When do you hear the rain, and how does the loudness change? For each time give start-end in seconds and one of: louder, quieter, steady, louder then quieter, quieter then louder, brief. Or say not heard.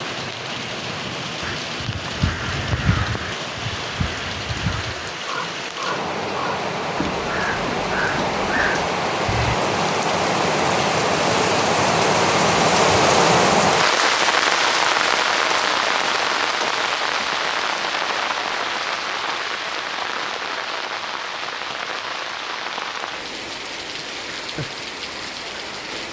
0.0-26.0 louder then quieter.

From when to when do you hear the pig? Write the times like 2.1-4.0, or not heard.
not heard.